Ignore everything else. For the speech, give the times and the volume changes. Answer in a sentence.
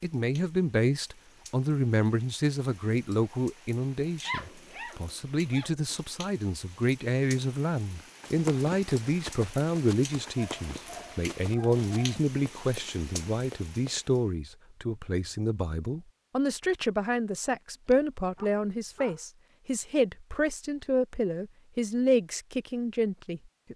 You can hear the speech from 0.0 to 23.7 s, at a steady volume.